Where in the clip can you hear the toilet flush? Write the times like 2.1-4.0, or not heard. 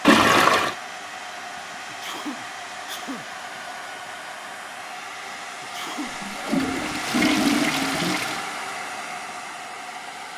0.1-0.8, 6.0-8.4.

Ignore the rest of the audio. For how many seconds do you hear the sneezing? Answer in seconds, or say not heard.
2 s.